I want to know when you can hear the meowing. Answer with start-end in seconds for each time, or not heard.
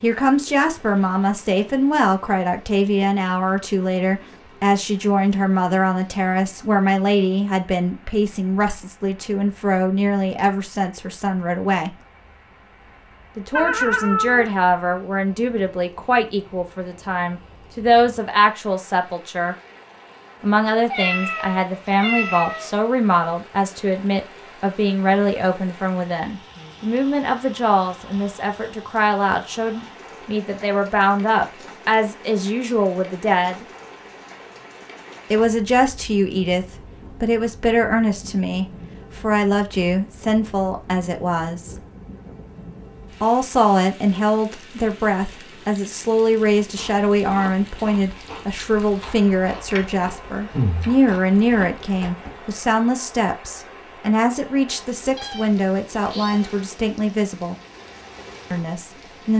13.6-14.5, 20.9-22.8, 55.1-57.1.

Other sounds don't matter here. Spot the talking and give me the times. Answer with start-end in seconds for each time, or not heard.
0.0-11.9, 13.3-19.6, 20.4-33.6, 35.3-41.8, 43.2-57.5, 58.5-59.3.